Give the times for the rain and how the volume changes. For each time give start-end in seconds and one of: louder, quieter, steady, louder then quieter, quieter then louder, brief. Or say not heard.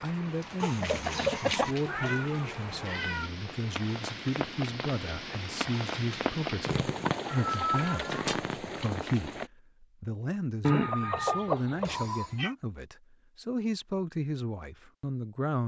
0.0-9.5 louder.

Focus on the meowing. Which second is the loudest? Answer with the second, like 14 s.
8 s.